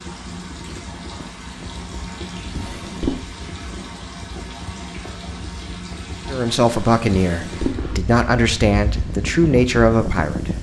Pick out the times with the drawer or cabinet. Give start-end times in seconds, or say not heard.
2.5-3.2, 7.2-7.8.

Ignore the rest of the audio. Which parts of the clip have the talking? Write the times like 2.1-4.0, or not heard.
6.2-10.5.